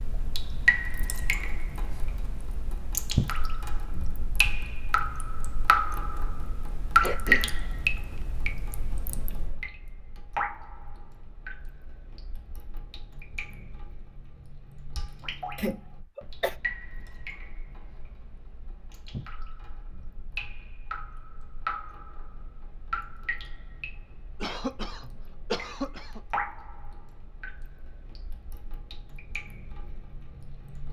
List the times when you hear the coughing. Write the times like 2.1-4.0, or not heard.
7.0-8.0, 15.6-16.6, 24.4-26.2.